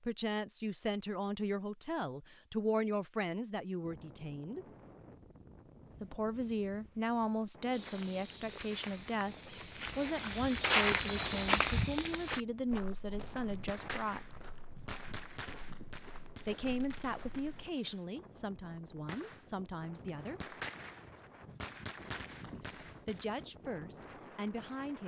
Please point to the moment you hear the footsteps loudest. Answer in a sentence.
The loudest moment of the footsteps is at 11 seconds.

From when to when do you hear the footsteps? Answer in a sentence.
You can hear the footsteps from 7.7 to 17.7 s.